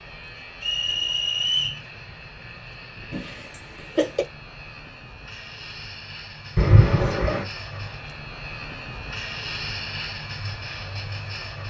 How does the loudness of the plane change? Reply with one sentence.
The volume of the plane goes up.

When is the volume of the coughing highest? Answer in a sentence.
The loudest moment of the coughing is at 7 seconds.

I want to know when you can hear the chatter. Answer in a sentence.
You can't hear the chatter here.